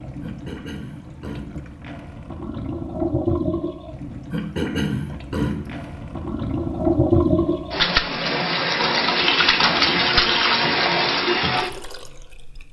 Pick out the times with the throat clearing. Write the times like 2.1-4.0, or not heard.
0.2-1.7, 4.3-5.8, 9.3-10.1.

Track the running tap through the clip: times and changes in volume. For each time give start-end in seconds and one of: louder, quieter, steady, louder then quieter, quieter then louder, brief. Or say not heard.
0.0-12.6 louder.